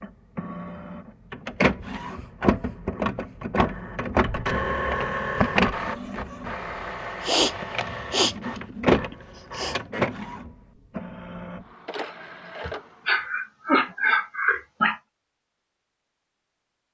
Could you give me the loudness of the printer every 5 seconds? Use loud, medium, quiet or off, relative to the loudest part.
loud, loud, medium, off.